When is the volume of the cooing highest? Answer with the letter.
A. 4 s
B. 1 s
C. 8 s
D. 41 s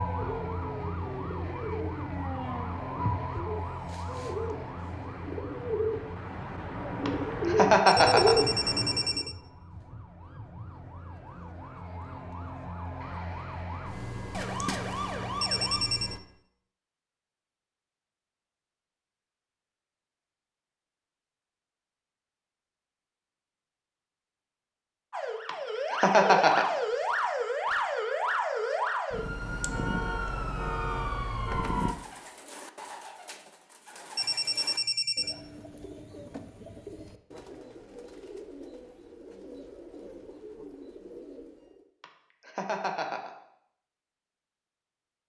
C.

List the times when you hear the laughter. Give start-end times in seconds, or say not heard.
7.0-8.3, 25.4-26.6, 42.0-43.3.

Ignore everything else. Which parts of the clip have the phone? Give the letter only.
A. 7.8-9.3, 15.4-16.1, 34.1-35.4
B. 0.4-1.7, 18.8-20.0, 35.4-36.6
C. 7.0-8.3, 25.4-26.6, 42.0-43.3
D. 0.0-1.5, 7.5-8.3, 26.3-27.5
A.